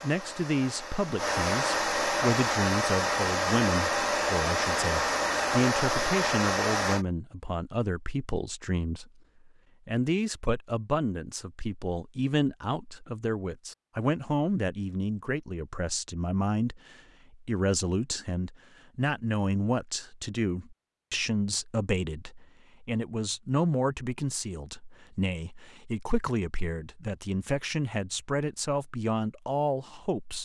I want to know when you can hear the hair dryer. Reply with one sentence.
The hair dryer can be heard from 0.0 to 7.0 s.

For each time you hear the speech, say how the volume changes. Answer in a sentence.
You can hear the speech from 0.0 to 30.4 s, at a steady volume.